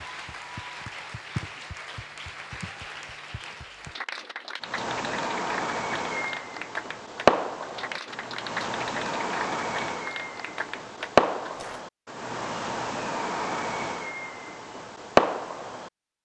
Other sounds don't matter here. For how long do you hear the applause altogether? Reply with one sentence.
You can hear the applause for 12 seconds altogether.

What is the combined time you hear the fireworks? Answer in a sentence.
The fireworks can be heard for 11 seconds in total.